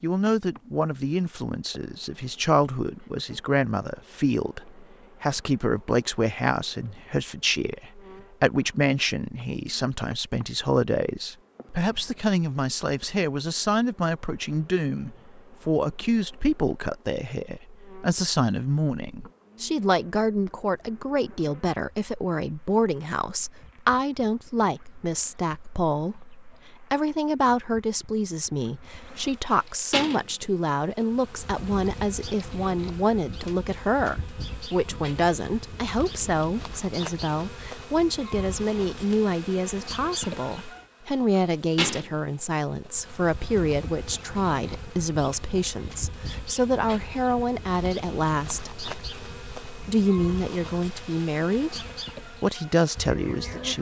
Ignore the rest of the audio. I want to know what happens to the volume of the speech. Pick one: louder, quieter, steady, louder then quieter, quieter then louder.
steady.